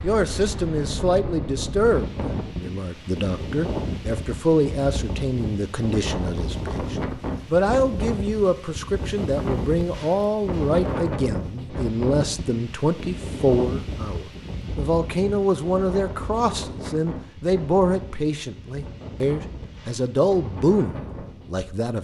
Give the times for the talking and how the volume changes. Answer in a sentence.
The talking can be heard from 0.0 to 21.9 s, at a steady volume.